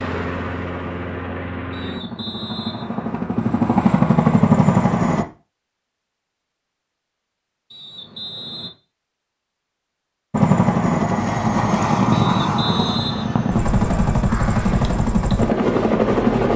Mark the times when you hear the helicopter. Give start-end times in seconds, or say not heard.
0.0-5.2, 10.3-16.5.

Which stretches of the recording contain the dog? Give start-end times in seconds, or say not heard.
not heard.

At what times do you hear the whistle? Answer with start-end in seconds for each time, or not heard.
1.7-3.2, 7.7-8.7, 12.1-14.2.